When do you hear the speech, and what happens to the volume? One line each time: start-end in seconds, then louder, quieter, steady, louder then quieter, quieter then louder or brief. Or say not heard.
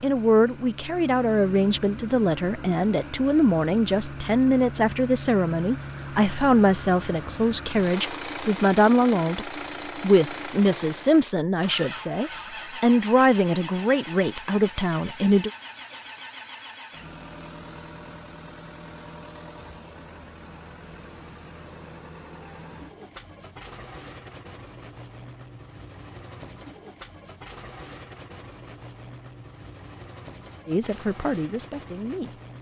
0.0-15.5 steady
30.6-32.3 brief.